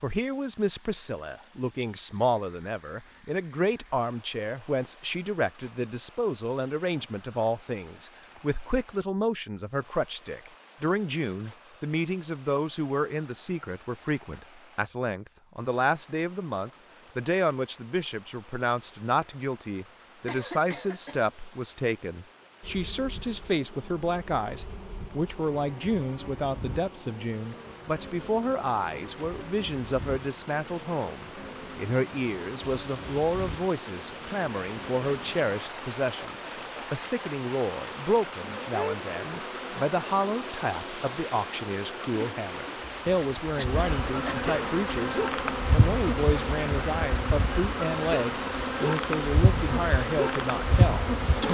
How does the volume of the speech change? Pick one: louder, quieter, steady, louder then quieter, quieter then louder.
steady.